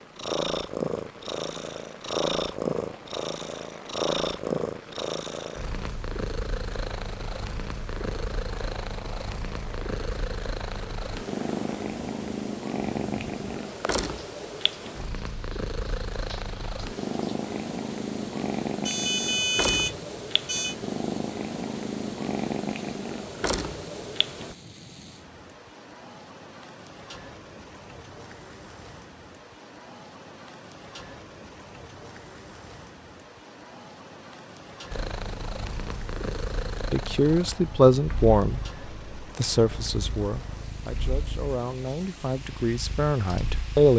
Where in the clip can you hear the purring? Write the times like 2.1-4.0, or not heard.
0.1-24.6, 34.9-43.9.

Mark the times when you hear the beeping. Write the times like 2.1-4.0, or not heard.
18.9-20.8.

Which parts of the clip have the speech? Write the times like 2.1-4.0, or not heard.
36.9-43.9.